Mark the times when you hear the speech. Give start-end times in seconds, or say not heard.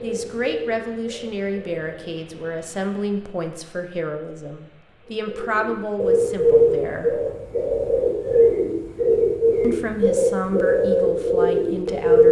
0.0-7.2, 9.6-12.2.